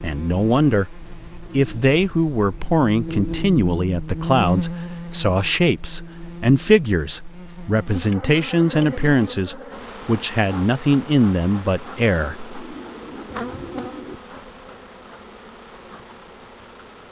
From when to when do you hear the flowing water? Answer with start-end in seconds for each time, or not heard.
not heard.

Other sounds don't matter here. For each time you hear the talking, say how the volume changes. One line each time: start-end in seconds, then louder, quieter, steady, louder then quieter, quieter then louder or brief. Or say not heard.
0.0-12.5 steady.